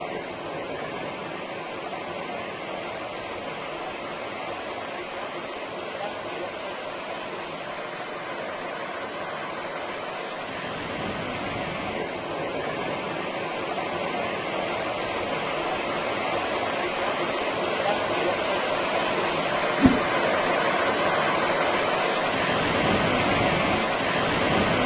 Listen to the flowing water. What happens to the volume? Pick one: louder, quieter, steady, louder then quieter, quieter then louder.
louder.